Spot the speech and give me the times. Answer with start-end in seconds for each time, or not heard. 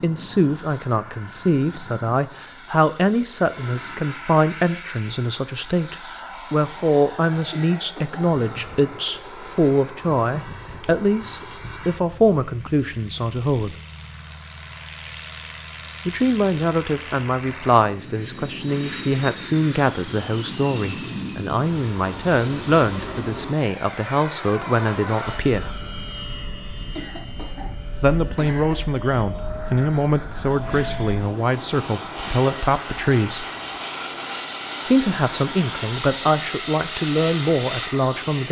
0.0-13.8, 16.1-25.8, 28.0-33.5, 34.9-38.4.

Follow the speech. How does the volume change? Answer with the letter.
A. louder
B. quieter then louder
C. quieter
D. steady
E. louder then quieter
D.